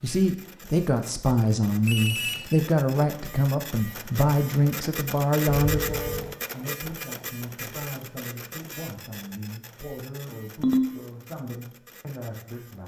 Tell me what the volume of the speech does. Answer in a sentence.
The loudness of the speech goes down.